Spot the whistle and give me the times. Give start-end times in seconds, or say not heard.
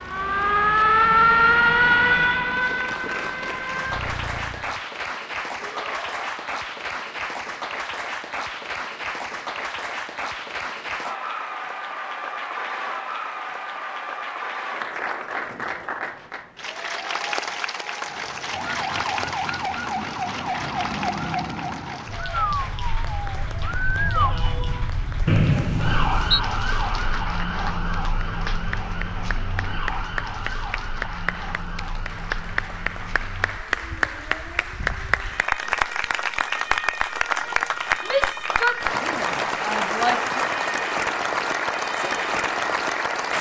25.2-26.4.